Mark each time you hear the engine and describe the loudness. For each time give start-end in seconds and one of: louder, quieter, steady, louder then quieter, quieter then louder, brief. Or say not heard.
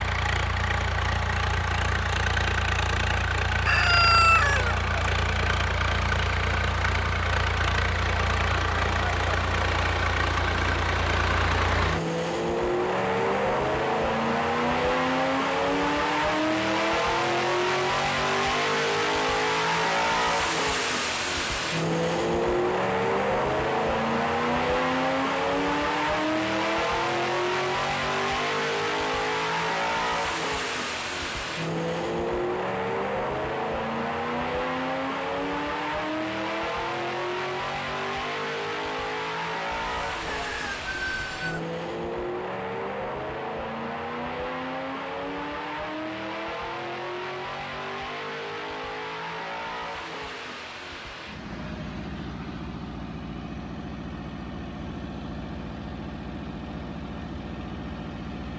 0.0-58.5 quieter.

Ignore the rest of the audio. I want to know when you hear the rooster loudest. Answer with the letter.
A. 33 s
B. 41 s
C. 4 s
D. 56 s
C.